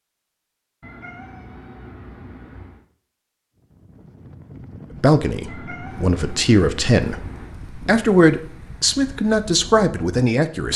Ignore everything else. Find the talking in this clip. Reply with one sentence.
The talking can be heard from 5.0 to 10.7 s.